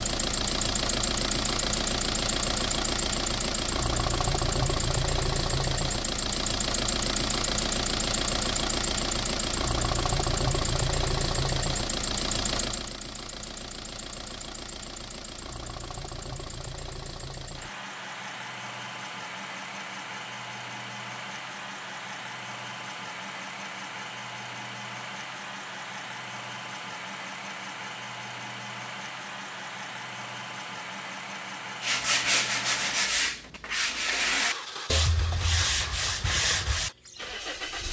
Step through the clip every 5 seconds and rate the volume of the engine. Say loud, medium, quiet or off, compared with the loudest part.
loud, loud, loud, medium, medium, medium, medium, medium.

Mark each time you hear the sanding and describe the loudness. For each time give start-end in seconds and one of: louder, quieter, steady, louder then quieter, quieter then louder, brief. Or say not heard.
31.8-36.9 steady.